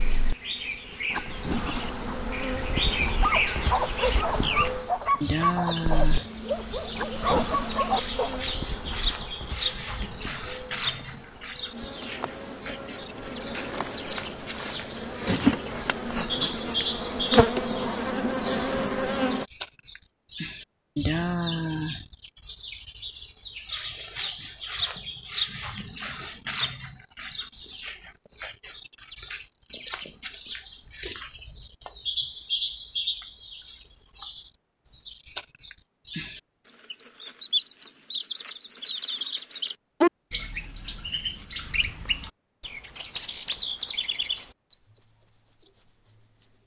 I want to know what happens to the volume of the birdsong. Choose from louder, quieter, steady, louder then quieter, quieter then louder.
steady.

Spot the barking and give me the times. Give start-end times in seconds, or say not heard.
3.1-8.5.